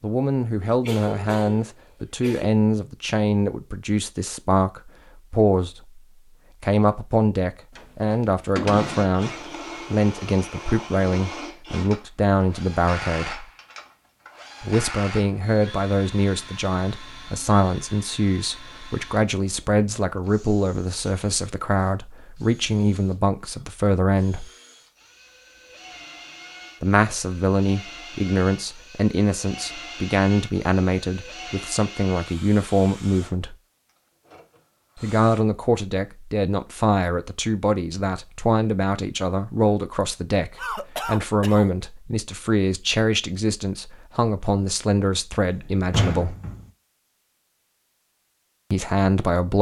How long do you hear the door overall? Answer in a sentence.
You can hear the door for 3 seconds altogether.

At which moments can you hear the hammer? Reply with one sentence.
The hammer can't be heard in this clip.